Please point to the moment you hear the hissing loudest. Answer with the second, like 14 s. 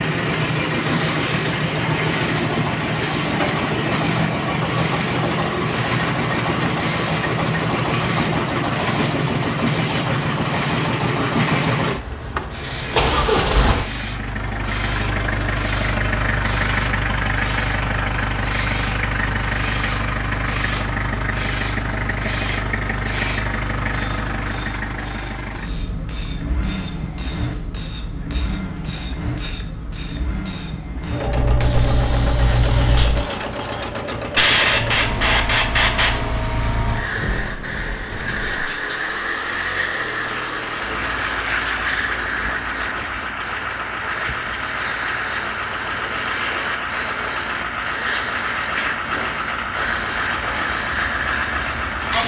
35 s.